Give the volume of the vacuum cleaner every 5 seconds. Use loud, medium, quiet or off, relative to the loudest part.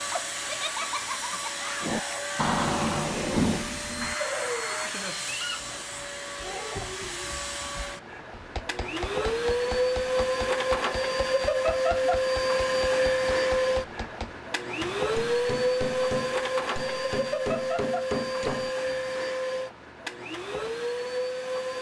medium, medium, loud, loud, medium.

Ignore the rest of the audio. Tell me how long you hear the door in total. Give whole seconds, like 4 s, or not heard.
2 s.